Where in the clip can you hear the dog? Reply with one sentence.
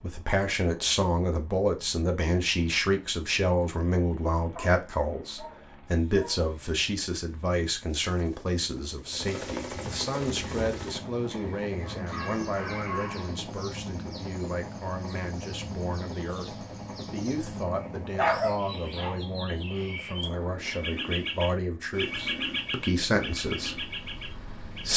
You can hear the dog from 4.5 to 6.5 s, from 11.8 to 13.4 s and from 18.1 to 19.1 s.